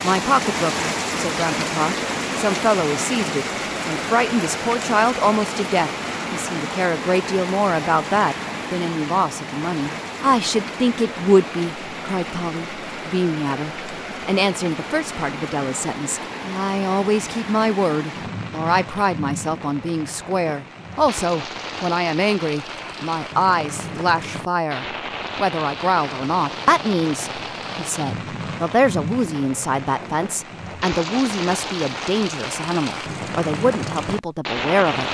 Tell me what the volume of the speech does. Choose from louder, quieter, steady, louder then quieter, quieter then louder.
steady.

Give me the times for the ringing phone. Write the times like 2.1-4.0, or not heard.
not heard.